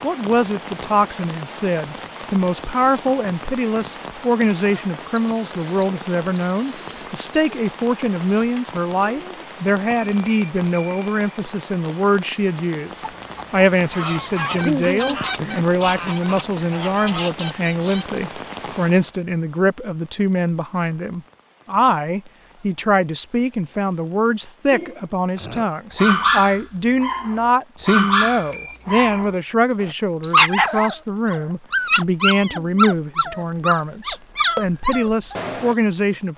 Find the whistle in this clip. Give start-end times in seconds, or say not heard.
5.2-6.8, 30.2-31.0.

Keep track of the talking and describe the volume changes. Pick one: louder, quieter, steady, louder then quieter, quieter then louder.
steady.